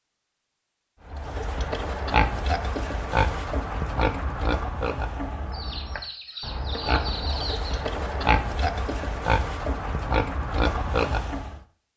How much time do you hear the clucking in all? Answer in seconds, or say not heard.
2 s.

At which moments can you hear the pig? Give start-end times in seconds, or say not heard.
1.1-11.6.